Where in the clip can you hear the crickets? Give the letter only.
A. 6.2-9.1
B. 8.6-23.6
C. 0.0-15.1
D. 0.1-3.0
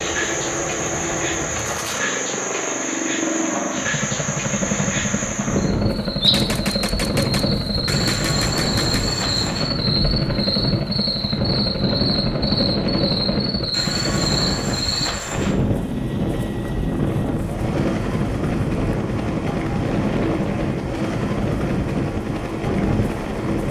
C.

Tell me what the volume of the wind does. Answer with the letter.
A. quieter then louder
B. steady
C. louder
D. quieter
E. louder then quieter
B.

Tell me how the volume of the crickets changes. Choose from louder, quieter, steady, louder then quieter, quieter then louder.
steady.